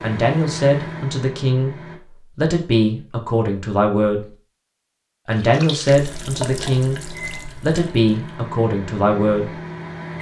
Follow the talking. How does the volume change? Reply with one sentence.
The volume of the talking stays about the same.